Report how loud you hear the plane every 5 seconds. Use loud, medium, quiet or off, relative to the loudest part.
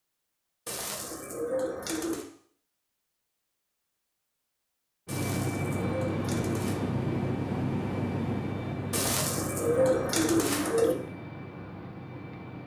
off, loud, medium.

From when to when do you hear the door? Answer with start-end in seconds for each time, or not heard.
not heard.